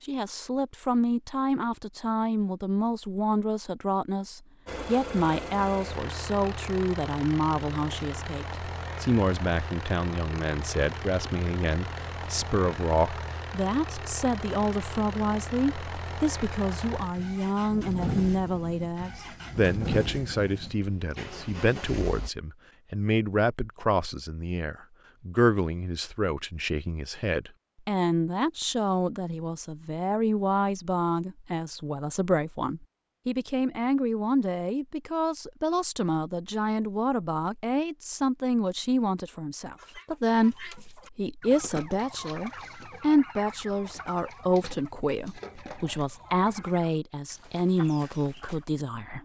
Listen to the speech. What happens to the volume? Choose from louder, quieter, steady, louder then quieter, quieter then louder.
steady.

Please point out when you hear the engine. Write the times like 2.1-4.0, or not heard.
4.7-22.3.